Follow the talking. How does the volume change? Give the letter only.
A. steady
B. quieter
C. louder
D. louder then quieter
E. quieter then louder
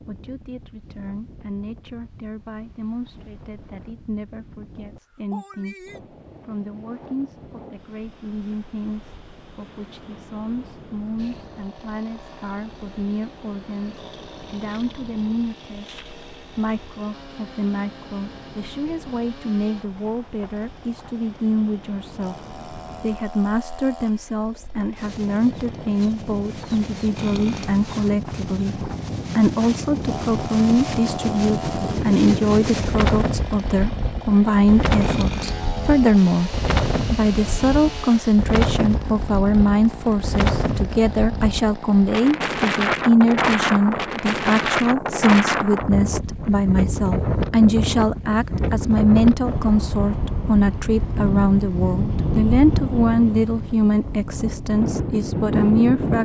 C.